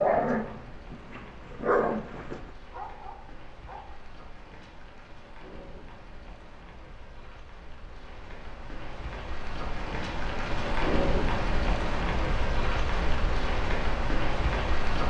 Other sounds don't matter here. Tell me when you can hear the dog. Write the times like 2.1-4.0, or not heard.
0.0-3.9.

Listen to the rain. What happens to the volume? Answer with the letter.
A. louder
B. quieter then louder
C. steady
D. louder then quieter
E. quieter
A.